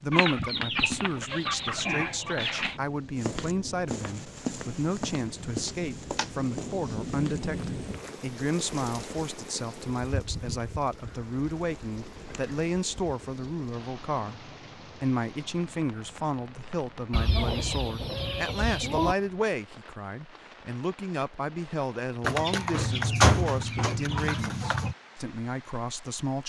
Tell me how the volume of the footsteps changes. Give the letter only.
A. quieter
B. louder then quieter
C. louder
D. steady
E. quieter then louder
A.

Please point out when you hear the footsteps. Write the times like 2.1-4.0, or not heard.
3.1-8.2.